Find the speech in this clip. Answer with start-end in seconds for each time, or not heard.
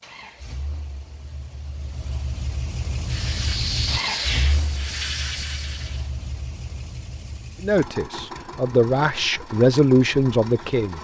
7.6-10.9.